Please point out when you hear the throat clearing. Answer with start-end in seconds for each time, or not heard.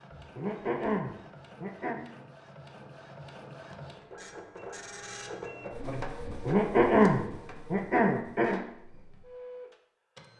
0.2-2.0, 6.2-8.6.